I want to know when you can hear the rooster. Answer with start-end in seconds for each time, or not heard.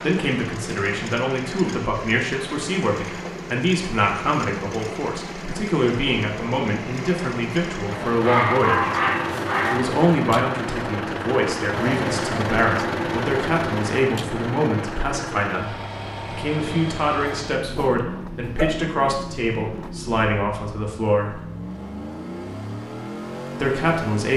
not heard.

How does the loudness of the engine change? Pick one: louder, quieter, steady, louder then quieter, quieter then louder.
louder then quieter.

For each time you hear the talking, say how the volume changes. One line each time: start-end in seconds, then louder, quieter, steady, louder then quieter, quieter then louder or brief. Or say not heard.
0.0-8.9 steady
9.7-21.4 steady
23.6-24.3 brief.